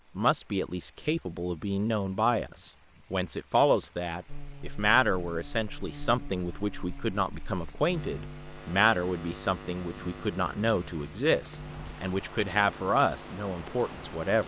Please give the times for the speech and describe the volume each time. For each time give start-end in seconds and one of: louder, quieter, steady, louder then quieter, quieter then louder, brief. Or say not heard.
0.1-14.4 steady.